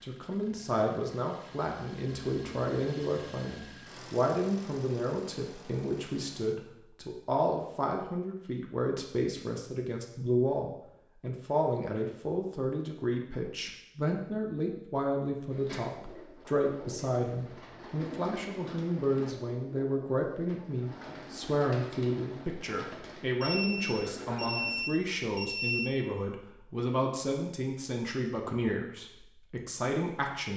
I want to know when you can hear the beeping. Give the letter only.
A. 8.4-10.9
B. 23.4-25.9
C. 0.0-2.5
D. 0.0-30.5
B.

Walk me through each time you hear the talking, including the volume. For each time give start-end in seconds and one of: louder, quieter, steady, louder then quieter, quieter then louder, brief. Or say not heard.
0.0-30.5 steady.